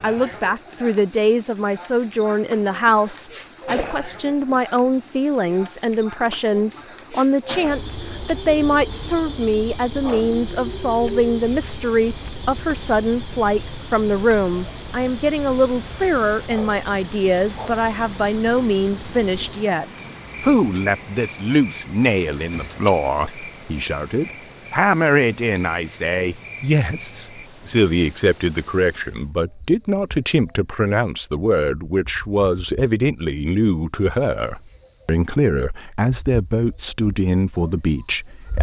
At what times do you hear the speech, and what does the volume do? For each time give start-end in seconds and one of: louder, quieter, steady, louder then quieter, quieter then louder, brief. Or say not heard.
0.0-38.5 steady.